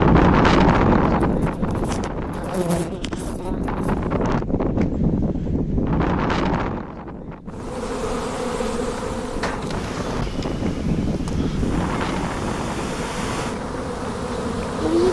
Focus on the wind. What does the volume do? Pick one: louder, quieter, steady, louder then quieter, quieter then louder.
quieter.